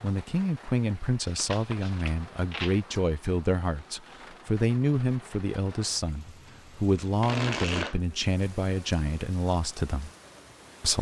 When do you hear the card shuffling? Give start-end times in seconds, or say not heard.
1.2-2.8, 7.2-8.0.